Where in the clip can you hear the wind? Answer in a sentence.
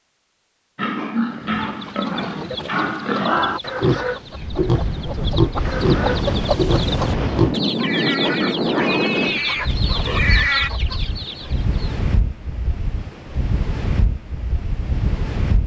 You can hear the wind from 4.3 to 15.6 s.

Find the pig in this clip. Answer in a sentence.
You can hear the pig from 0.8 to 10.7 s.